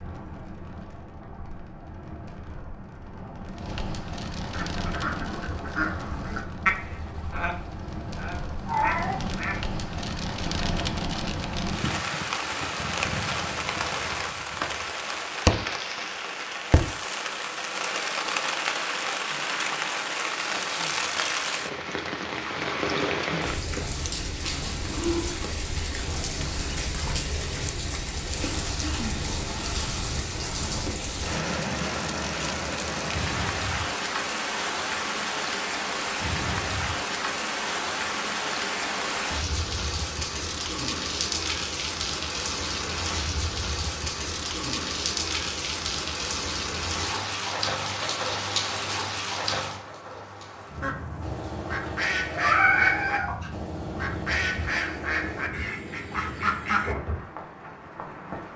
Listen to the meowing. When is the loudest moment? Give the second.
53 s.